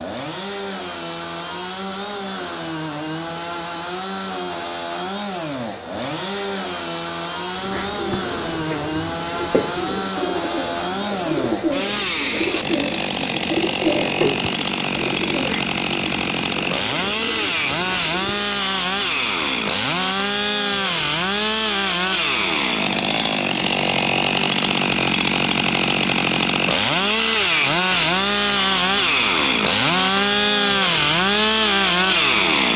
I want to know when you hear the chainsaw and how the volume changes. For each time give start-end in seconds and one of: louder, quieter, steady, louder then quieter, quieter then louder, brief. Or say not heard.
0.0-32.7 louder.